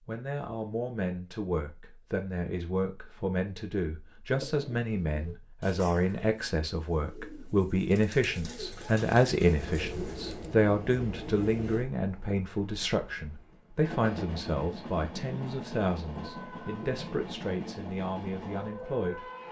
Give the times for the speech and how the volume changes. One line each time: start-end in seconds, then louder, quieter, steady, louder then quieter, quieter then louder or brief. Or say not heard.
0.1-19.2 louder then quieter.